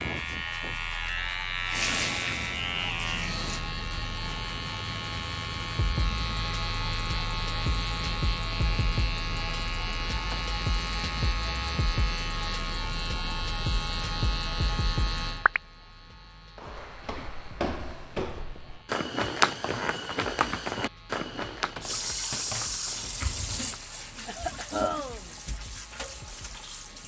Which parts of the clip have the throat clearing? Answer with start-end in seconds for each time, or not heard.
24.2-25.3.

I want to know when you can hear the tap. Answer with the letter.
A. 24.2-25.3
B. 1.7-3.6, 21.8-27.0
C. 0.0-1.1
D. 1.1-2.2
B.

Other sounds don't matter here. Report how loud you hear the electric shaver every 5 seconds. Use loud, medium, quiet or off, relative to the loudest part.
loud, loud, loud, medium, quiet, quiet.